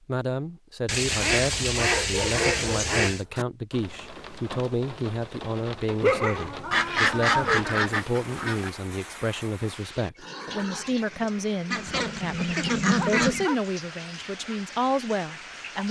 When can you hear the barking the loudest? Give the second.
6 s.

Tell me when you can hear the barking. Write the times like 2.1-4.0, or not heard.
1.8-3.5, 6.0-7.7, 12.9-13.6.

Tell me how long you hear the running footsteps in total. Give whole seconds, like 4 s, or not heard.
not heard.